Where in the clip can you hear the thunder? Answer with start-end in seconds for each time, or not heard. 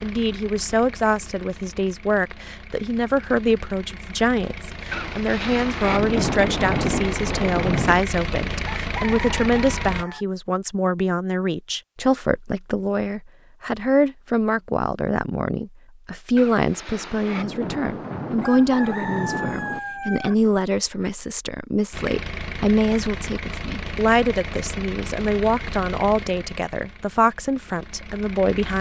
4.9-8.1, 16.4-19.8.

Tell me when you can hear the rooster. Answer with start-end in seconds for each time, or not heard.
8.7-10.2, 18.4-20.4.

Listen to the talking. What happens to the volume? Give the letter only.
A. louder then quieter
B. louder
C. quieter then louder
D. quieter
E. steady
E.